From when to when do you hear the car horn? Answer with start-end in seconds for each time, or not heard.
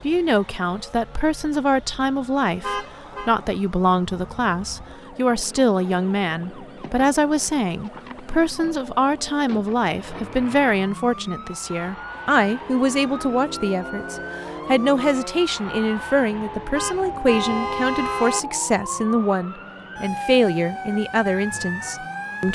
2.6-3.3, 16.7-18.4.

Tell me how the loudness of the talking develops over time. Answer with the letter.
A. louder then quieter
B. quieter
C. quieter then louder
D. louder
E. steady
E.